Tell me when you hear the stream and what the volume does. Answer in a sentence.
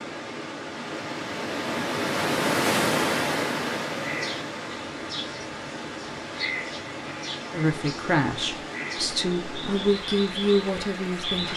The stream can be heard from 0.0 to 11.5 s, getting quieter.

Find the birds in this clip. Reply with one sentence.
You can hear the birds from 4.0 to 11.5 s.